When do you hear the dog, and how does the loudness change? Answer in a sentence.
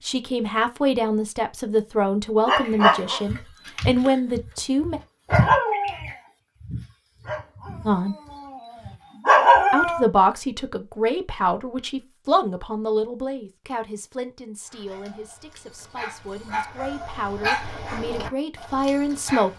The dog can be heard from 2.5 to 10.1 s, getting quieter then louder; and from 14.7 to 19.5 s, getting louder then quieter.